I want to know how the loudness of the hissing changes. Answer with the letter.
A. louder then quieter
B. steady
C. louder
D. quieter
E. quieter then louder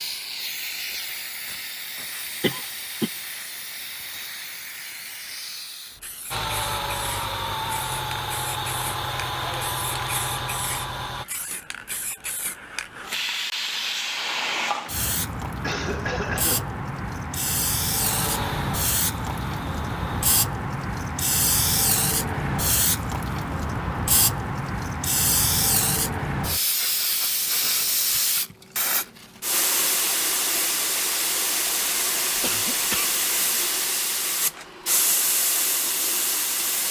C.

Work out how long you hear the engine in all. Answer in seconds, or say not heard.
7 s.